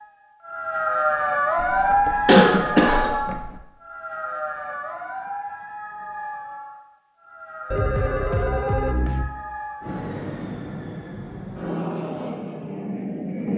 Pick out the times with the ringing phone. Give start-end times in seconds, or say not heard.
1.6-3.6, 7.7-9.2.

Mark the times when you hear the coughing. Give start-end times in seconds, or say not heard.
2.2-3.1.